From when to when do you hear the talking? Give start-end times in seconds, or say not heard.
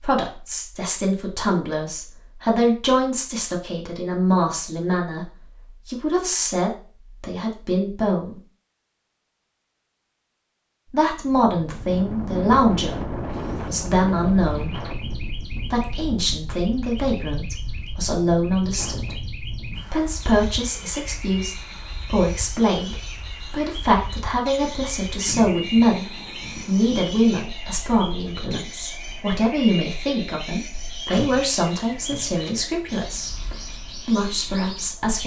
0.0-8.4, 10.9-13.1, 13.7-14.8, 15.4-19.1, 19.9-33.4, 34.0-35.2.